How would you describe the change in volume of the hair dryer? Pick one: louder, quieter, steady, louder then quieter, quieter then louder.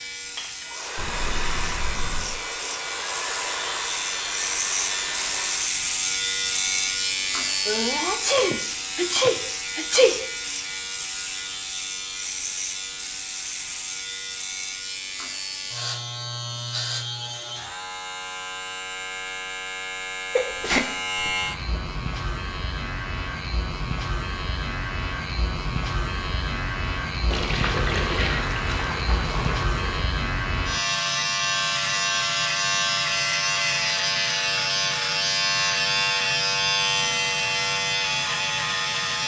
steady.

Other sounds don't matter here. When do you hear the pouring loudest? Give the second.
28 s.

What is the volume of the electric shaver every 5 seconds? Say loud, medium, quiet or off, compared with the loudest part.
medium, loud, medium, medium, medium, medium, loud, loud.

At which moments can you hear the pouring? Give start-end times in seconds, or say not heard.
0.9-2.4, 27.3-30.0.